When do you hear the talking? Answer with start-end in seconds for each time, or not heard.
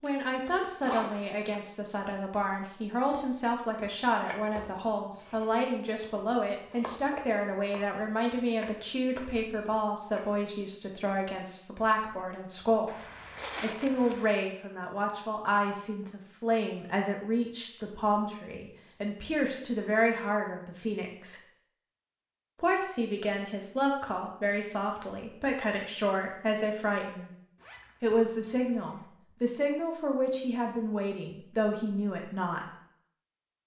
0.0-12.9, 13.6-21.4, 22.6-27.3, 28.0-32.6.